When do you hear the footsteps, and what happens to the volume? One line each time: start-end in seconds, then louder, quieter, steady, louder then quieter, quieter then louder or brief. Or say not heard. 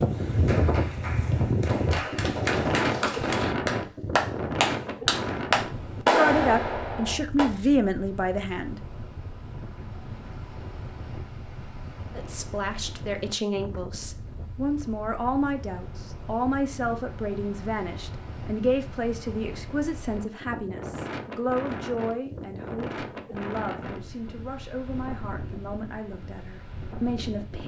not heard.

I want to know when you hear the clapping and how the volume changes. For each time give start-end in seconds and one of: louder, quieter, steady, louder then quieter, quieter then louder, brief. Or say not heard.
0.2-7.5 louder.